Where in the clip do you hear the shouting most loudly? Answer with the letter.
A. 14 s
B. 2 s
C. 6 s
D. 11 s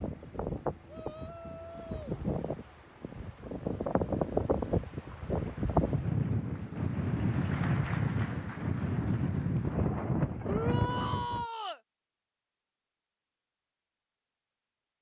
D.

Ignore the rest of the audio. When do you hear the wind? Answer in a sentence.
The wind can be heard from 0.0 to 11.4 s.